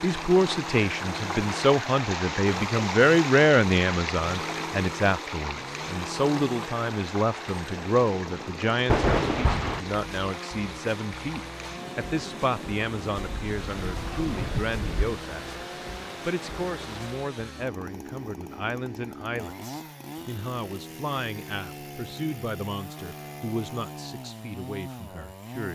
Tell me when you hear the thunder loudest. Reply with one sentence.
The volume of the thunder peaks at 9 seconds.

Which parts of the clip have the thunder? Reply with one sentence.
The thunder can be heard from 8.8 to 9.8 s and from 13.2 to 15.2 s.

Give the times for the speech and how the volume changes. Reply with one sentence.
The speech can be heard from 0.0 to 15.5 s, getting quieter; and from 16.2 to 25.7 s, at a steady volume.